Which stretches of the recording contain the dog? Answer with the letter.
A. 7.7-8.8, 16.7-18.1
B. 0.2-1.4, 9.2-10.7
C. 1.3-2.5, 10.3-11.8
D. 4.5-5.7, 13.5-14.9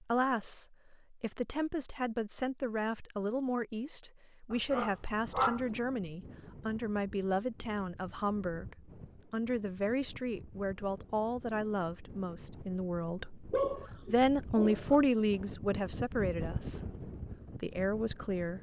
D.